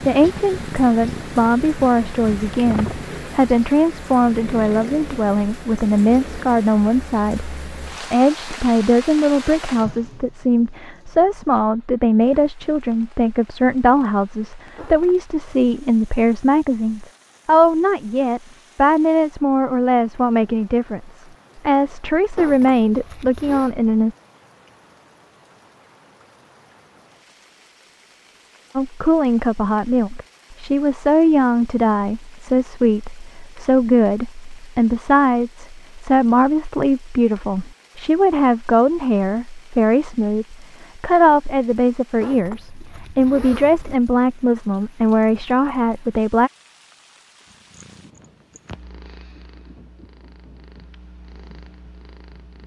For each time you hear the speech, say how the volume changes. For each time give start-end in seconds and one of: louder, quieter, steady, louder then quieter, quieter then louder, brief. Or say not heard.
0.1-24.1 steady
28.8-46.5 steady.